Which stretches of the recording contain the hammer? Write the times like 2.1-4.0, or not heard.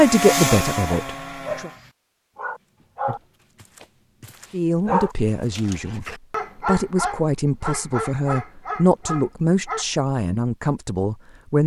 not heard.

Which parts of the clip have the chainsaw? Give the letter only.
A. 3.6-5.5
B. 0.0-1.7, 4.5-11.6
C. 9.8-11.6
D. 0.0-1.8
D.